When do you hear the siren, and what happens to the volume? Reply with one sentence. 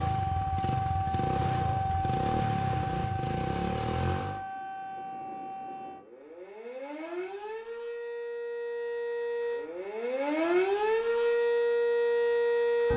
You can hear the siren from 0.0 to 12.9 s, getting quieter then louder.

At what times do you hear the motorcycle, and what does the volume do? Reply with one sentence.
The motorcycle can be heard from 0.0 to 4.4 s, at a steady volume.